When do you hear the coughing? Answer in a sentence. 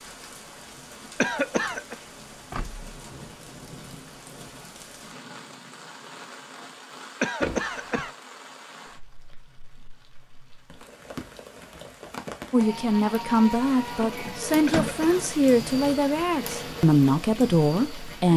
The coughing can be heard from 1.2 to 1.9 s, from 7.2 to 8.1 s and from 14.7 to 15.2 s.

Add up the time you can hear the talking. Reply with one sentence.
The talking can be heard for 6 seconds in total.